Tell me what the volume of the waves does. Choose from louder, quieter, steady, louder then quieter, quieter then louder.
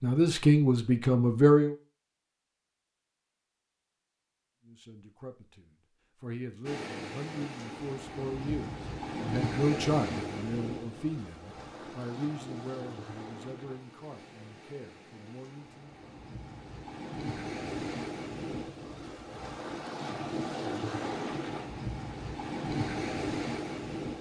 quieter then louder.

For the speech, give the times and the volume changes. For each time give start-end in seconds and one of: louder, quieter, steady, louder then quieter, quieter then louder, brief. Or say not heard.
0.0-1.8 brief
4.7-15.9 louder then quieter.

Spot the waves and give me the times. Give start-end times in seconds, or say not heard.
6.7-24.1.